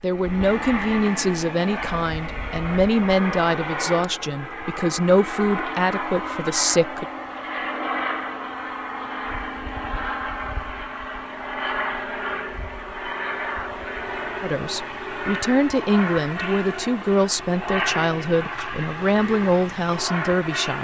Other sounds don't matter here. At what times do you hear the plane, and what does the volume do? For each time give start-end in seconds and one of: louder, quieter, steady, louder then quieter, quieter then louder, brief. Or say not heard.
0.0-20.8 steady.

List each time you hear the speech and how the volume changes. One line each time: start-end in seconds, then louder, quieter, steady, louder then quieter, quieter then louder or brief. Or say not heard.
0.0-7.0 steady
14.4-20.8 steady.